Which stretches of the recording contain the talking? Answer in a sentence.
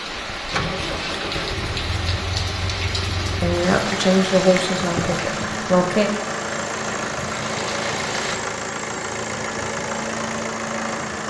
The talking can be heard from 3.4 to 6.1 s.